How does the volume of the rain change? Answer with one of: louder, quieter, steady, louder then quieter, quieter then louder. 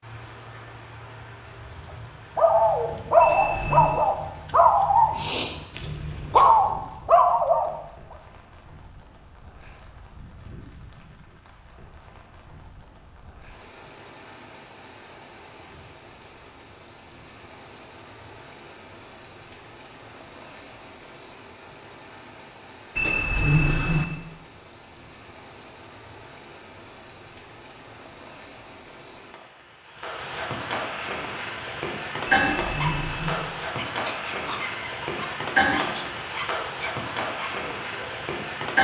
louder.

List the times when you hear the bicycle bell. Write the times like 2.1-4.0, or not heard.
3.2-4.0, 22.9-24.1, 32.2-33.4.